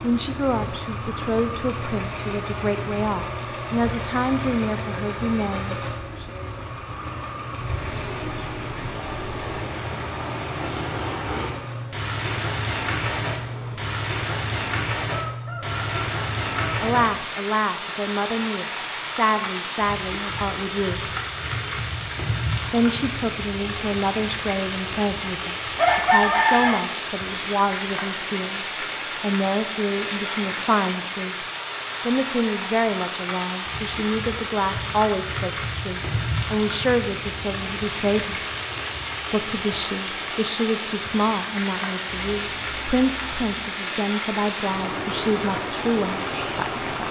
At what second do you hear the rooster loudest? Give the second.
26 s.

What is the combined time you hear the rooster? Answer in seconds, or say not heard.
3 s.